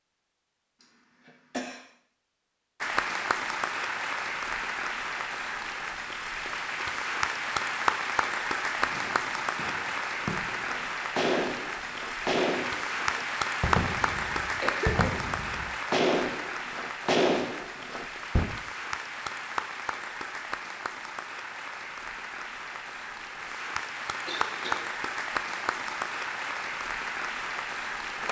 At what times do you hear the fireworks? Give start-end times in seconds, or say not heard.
8.8-18.6.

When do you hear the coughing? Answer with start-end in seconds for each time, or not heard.
0.8-1.9, 14.4-15.2, 24.2-24.9.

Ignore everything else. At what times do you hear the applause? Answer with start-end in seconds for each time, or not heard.
2.8-28.2.